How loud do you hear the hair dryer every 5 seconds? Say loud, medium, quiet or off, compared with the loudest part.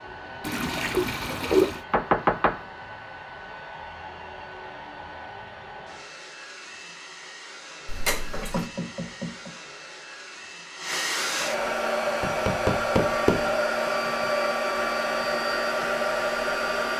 quiet, quiet, loud, loud.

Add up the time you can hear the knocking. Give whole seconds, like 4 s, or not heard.
3 s.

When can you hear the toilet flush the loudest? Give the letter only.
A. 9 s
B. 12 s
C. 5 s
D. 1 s
D.